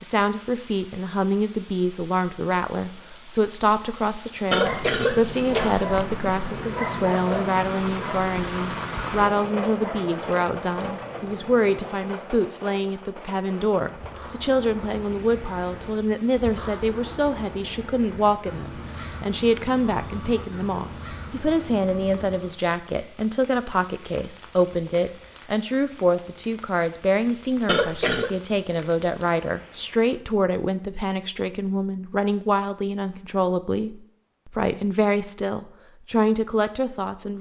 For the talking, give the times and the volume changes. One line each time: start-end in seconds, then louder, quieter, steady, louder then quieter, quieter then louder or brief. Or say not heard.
0.0-37.3 steady.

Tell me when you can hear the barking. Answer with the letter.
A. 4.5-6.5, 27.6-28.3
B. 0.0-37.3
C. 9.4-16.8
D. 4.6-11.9
D.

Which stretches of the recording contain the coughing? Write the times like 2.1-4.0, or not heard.
4.5-6.5, 27.6-28.3.